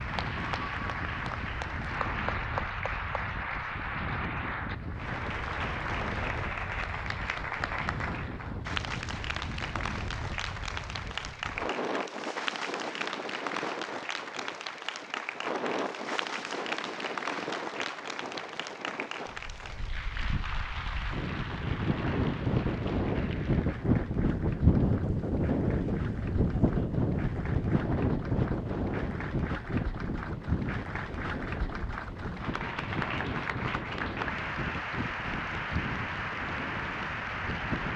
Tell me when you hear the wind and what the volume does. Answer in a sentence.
The wind can be heard from 0.0 to 37.9 s, getting louder then quieter.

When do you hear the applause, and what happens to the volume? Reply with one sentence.
You can hear the applause from 0.0 to 37.9 s, getting quieter then louder.